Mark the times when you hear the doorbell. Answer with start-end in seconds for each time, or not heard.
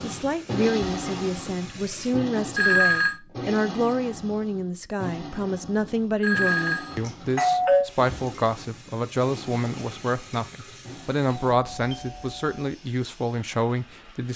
2.5-3.1, 6.2-7.8, 11.5-12.6.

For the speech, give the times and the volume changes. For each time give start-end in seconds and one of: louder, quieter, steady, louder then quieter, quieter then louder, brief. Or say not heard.
0.0-14.3 steady.